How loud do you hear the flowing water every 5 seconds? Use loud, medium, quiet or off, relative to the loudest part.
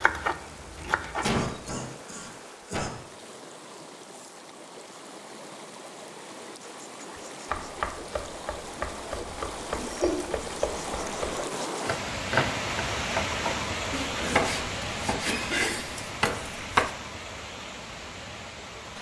quiet, medium, loud, medium.